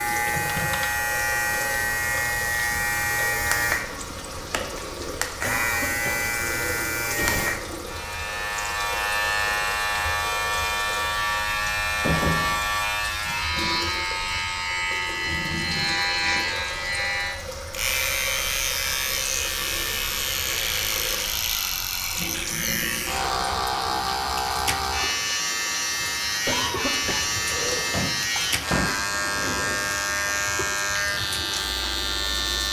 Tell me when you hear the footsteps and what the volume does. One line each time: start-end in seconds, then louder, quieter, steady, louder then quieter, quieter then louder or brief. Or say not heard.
not heard.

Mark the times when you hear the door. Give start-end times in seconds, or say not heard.
0.2-0.9, 11.3-12.9, 27.8-29.0.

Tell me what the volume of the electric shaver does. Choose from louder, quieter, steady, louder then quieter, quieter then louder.
steady.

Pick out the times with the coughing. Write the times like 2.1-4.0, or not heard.
5.4-7.5, 26.4-28.1.